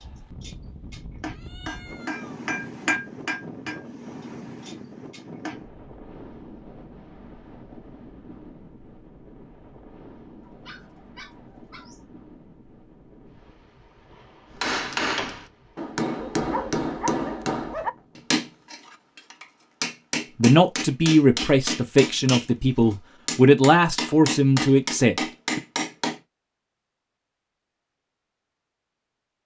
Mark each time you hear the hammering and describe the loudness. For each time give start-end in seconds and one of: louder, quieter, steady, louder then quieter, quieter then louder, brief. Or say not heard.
0.0-5.6 louder then quieter
14.6-26.2 steady.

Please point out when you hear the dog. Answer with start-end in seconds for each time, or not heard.
10.4-12.1, 16.1-17.9.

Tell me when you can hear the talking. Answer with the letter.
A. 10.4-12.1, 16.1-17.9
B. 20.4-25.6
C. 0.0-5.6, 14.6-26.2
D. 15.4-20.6
B.